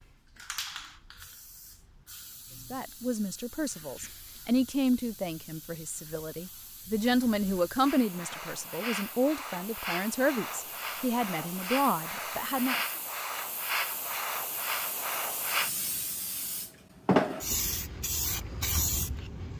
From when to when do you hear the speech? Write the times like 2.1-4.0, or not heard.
2.7-12.9.